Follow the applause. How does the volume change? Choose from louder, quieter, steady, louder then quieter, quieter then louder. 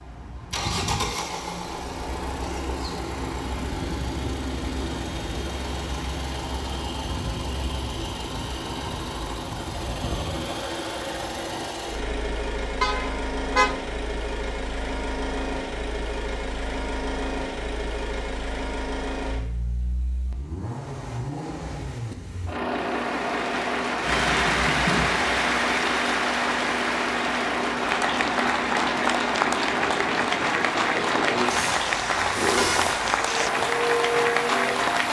steady.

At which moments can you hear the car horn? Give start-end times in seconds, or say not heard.
12.8-13.8, 31.5-33.5.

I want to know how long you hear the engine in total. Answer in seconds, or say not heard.
35 s.